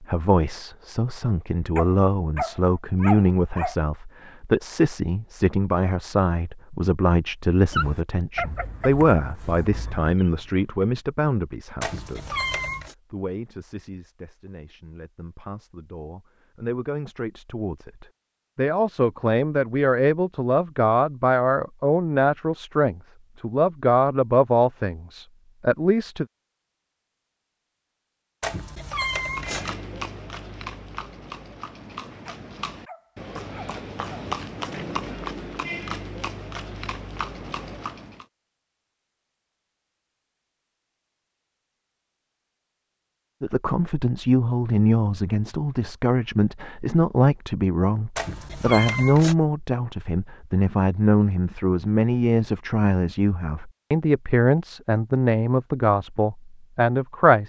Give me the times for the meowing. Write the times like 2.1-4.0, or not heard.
11.8-12.9, 28.4-29.8, 48.1-49.4.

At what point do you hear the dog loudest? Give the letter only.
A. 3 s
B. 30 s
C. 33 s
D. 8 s
A.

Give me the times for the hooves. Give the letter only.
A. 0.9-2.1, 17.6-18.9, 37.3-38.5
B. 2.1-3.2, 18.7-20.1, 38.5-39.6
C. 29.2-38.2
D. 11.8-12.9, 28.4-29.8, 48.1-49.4
C.